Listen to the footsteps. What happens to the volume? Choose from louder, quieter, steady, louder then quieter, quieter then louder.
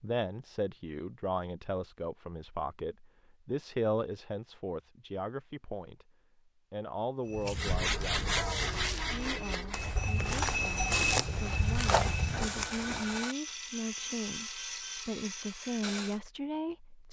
louder.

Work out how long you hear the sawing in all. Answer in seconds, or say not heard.
9 s.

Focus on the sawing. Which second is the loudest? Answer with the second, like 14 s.
8 s.